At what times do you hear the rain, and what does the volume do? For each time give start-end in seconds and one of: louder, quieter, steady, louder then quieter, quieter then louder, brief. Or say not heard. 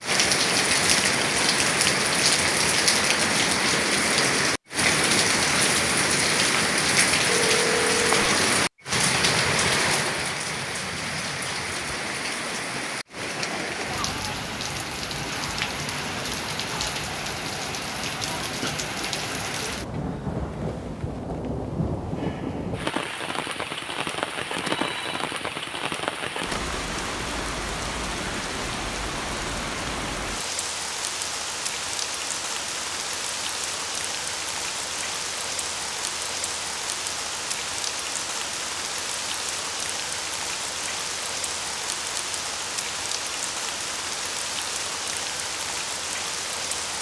0.0-46.9 quieter.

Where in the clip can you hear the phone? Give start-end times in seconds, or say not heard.
7.2-8.3, 24.8-25.2.